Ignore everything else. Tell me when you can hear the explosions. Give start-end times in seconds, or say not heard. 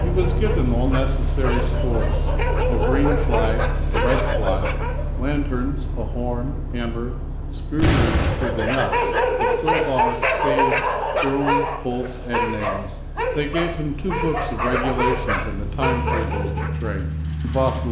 7.8-8.8.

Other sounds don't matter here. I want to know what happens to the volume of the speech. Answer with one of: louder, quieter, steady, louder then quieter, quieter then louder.
steady.